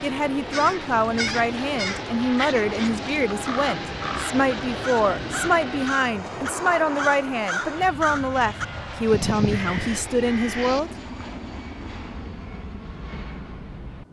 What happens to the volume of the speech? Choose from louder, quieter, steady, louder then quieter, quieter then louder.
steady.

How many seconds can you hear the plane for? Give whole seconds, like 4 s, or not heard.
14 s.